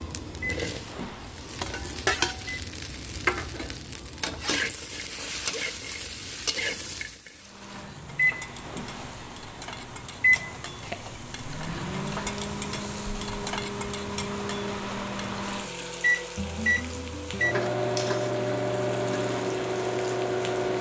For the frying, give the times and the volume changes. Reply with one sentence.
The frying can be heard from 0.0 to 20.7 s, getting quieter.